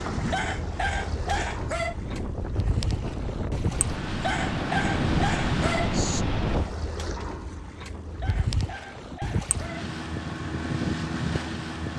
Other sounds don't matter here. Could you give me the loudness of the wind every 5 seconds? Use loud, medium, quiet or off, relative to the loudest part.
medium, loud, off.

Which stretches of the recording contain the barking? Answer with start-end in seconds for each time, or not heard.
0.3-1.9, 4.2-6.2, 8.2-9.8.